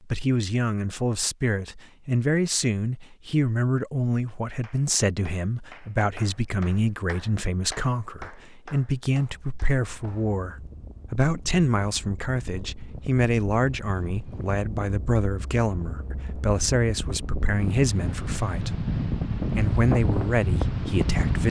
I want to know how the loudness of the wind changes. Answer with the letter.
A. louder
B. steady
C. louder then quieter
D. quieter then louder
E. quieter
A.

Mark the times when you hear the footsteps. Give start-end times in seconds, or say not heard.
not heard.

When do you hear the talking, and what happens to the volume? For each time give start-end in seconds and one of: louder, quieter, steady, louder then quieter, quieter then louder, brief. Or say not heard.
0.1-21.4 steady.